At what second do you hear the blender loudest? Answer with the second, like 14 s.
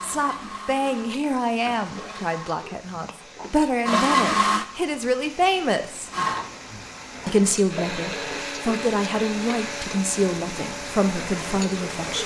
4 s.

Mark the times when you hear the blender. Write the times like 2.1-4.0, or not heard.
0.0-4.7, 6.1-12.0.